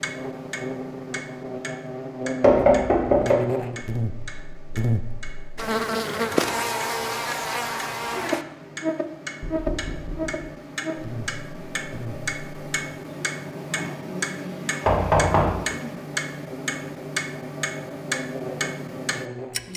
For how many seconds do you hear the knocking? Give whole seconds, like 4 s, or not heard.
3 s.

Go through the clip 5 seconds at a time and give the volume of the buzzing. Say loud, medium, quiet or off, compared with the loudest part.
loud, loud, medium, medium.